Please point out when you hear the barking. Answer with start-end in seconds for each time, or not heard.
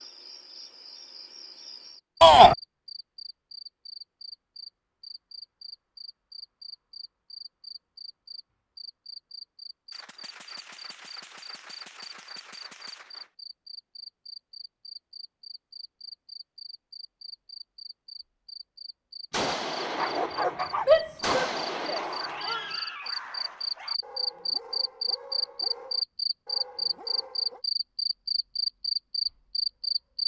19.9-27.6.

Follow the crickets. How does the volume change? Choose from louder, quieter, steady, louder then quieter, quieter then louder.
louder.